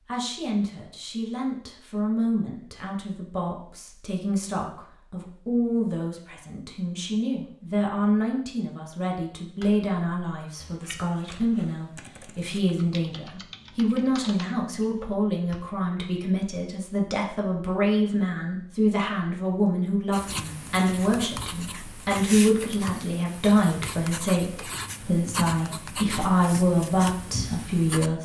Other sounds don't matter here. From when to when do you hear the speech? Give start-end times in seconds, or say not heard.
0.1-28.2.